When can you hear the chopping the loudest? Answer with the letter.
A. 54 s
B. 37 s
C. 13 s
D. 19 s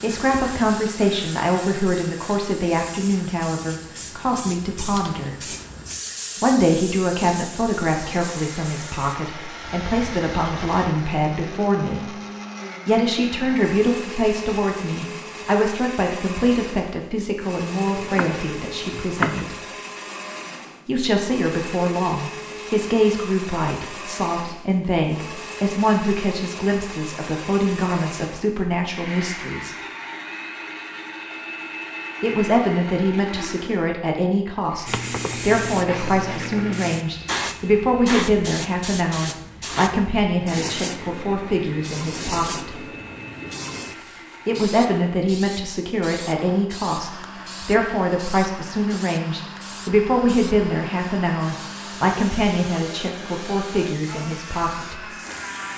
D.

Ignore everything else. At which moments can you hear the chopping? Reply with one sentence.
You can hear the chopping from 17.9 to 19.4 s.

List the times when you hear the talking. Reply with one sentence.
You can hear the talking from 0.0 to 5.3 s, from 6.4 to 12.1 s, from 12.8 to 19.6 s, from 20.9 to 29.8 s, from 32.2 to 42.8 s and from 44.5 to 55.0 s.